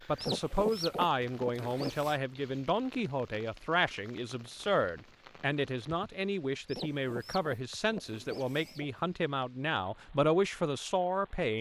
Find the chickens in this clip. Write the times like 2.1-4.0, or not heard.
0.1-2.1, 6.7-9.1.